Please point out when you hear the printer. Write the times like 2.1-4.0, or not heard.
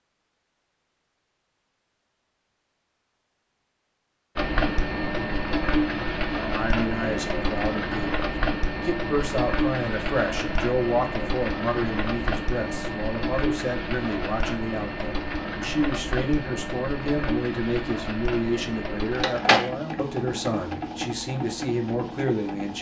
4.3-22.7.